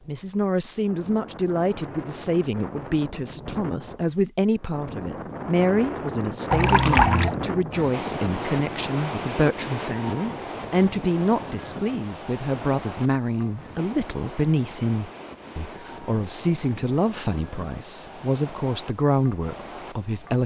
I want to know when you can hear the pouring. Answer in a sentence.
The pouring can be heard from 6.5 to 7.3 s.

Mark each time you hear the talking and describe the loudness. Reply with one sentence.
You can hear the talking from 0.1 to 20.4 s, at a steady volume.